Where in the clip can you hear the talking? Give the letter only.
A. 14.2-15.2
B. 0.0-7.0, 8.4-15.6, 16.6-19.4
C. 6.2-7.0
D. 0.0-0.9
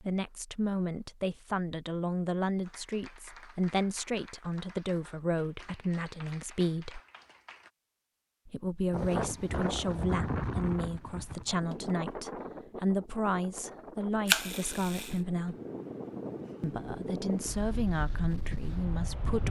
B.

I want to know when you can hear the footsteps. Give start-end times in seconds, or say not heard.
not heard.